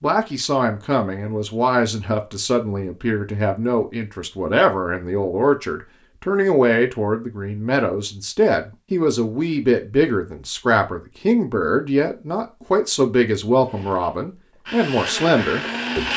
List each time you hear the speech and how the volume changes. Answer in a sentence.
You can hear the speech from 0.0 to 16.1 s, at a steady volume.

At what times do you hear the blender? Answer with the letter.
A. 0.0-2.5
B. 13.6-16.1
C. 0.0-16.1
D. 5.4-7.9
B.